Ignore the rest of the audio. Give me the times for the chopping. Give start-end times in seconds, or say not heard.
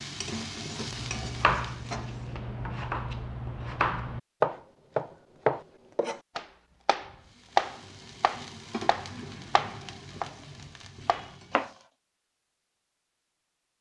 0.8-10.3, 11.1-11.7.